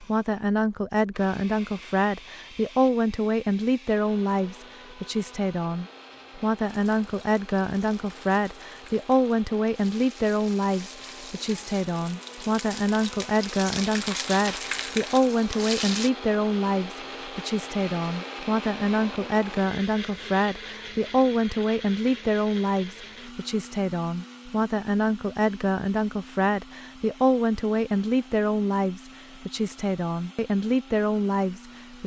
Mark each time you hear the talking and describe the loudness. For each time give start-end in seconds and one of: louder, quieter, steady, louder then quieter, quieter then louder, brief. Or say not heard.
0.0-32.0 steady.